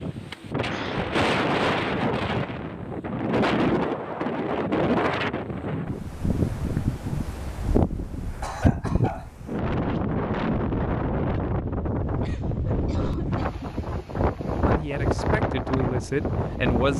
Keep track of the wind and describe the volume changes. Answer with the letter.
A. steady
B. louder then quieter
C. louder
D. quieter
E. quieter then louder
A.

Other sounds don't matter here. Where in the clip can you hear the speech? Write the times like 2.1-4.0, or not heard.
14.6-16.9.